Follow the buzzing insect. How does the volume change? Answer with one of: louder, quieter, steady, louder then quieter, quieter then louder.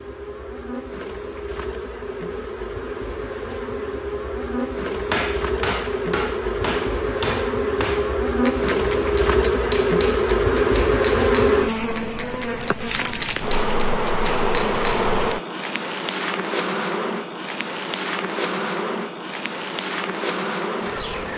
louder then quieter.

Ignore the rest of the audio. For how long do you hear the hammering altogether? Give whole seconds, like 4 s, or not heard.
10 s.